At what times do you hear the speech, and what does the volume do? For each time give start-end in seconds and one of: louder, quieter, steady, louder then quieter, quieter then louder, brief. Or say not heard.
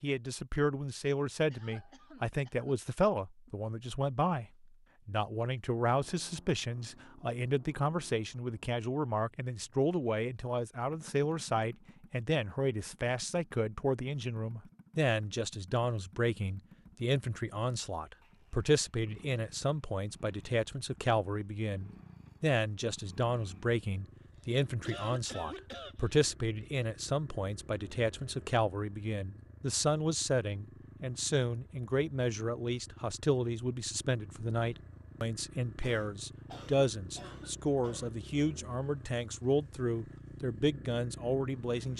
0.0-41.9 steady.